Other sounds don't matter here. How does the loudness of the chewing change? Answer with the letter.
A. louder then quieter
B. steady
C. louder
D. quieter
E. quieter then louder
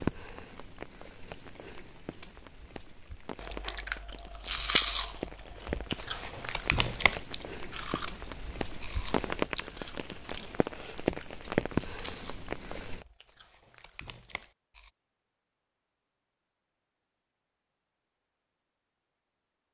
D.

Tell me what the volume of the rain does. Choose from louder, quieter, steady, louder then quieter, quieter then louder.
louder.